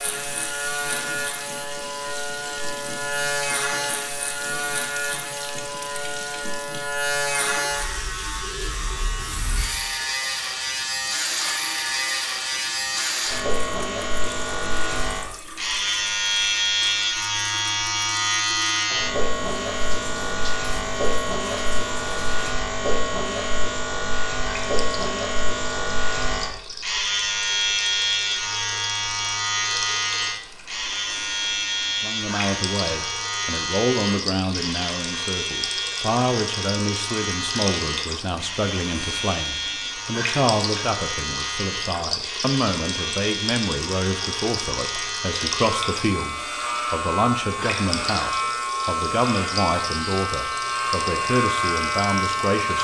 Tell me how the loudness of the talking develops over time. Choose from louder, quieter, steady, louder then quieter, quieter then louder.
steady.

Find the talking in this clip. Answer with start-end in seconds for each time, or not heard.
32.0-52.7.